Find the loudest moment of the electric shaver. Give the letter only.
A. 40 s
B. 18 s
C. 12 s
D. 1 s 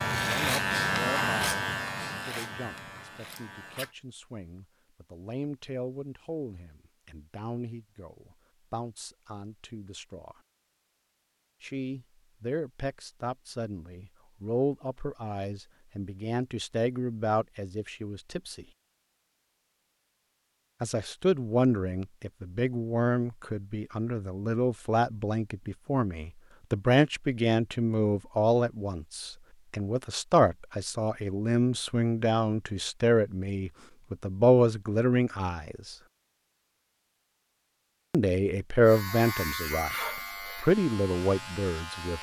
D.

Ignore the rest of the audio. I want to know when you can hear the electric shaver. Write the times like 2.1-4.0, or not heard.
0.0-4.0, 38.9-42.1.